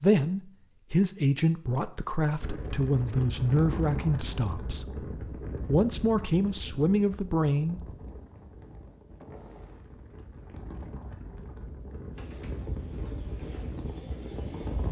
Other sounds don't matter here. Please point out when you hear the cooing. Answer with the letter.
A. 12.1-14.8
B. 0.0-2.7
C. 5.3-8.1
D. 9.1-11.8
A.